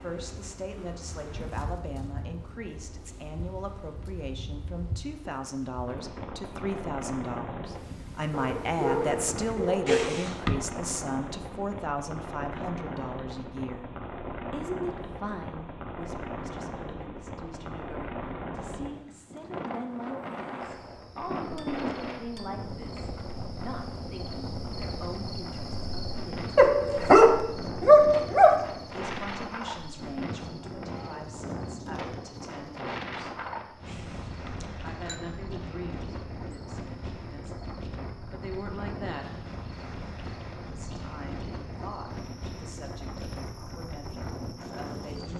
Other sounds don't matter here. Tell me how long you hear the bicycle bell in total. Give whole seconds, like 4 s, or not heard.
3 s.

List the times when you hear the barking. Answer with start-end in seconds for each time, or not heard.
8.3-10.2, 26.6-28.6.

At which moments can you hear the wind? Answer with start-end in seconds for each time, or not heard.
0.0-45.3.